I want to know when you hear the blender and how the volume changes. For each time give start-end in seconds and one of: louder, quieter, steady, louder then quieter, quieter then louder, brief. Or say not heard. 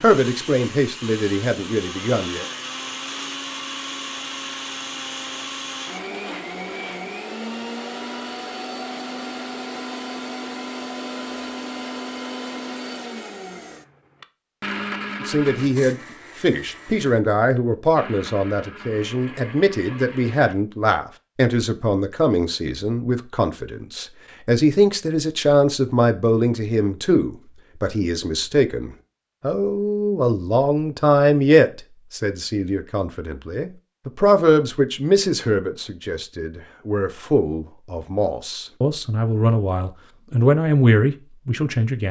0.0-20.6 quieter.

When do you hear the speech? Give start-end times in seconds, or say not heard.
0.0-2.5, 15.2-42.0.